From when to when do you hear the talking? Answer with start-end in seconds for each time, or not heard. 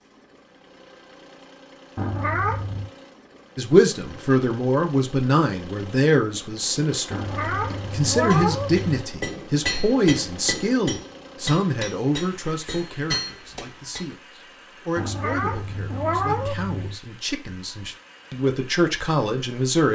3.5-7.2, 7.9-19.9.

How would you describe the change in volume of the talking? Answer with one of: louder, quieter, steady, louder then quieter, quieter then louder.
quieter then louder.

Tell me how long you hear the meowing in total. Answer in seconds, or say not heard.
5 s.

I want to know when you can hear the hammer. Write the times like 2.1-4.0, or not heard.
7.7-14.1.